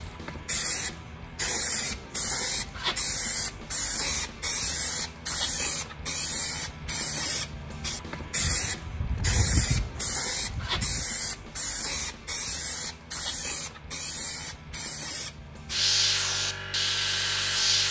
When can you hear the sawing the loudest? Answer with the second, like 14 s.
10 s.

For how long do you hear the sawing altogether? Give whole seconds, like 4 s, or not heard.
3 s.